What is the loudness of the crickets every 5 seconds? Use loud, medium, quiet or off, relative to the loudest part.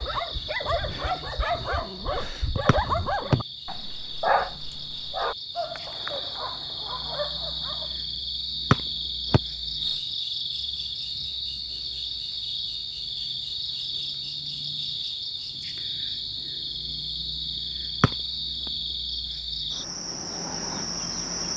medium, loud, loud, loud, loud.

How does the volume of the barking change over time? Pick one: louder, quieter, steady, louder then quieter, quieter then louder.
quieter.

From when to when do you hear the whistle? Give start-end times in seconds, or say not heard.
2.6-3.4, 8.7-10.0, 18.0-18.7.